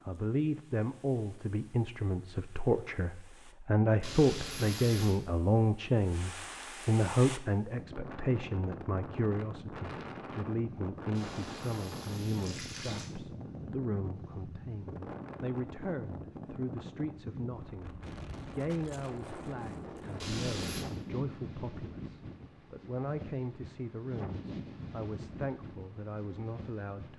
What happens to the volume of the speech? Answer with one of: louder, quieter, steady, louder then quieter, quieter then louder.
quieter.